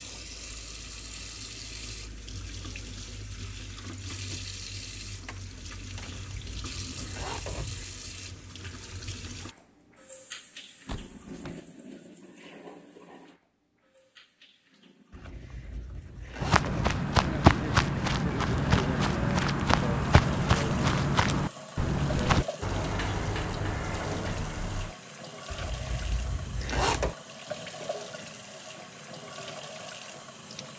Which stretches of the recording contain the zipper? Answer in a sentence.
The zipper can be heard from 5.9 to 7.8 s, from 15.1 to 17.0 s and from 25.5 to 27.1 s.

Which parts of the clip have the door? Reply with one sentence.
You can hear the door from 5.2 to 6.2 s, from 10.8 to 11.7 s and from 22.6 to 24.9 s.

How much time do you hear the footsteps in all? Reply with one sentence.
The footsteps can be heard for 6 seconds in total.